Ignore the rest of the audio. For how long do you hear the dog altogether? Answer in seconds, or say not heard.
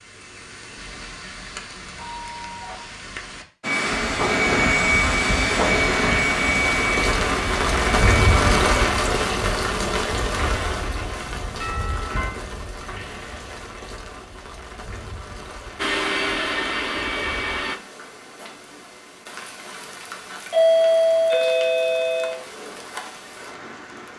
not heard.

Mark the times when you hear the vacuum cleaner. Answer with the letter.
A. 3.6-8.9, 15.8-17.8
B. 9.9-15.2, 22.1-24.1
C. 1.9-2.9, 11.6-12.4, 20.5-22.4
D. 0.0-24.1
A.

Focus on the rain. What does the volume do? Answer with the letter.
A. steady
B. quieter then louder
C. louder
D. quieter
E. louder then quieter
E.